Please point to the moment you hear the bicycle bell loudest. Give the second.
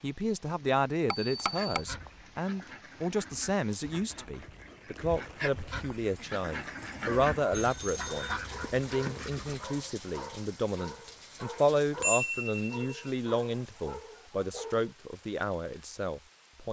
12 s.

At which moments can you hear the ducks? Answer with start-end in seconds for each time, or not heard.
1.6-9.8.